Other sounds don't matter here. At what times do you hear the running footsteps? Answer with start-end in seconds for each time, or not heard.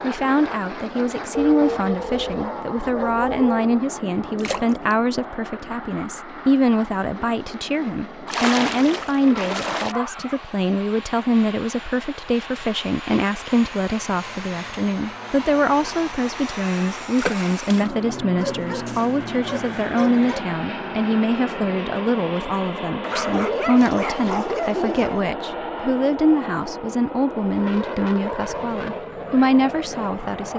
not heard.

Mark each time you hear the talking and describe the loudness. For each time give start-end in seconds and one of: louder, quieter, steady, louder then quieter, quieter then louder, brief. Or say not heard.
0.0-30.5 steady.